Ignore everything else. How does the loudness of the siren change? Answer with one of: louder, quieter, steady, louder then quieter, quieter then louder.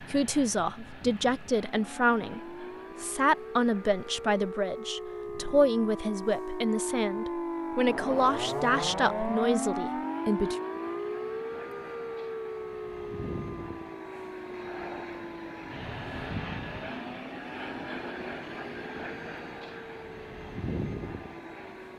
louder then quieter.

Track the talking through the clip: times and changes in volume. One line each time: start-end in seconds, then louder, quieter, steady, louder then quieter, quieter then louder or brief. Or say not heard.
0.0-10.6 steady.